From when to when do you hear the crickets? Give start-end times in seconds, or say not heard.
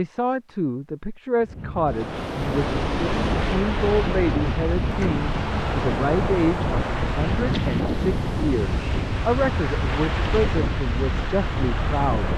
not heard.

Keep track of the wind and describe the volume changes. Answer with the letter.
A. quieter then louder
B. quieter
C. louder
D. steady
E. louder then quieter
D.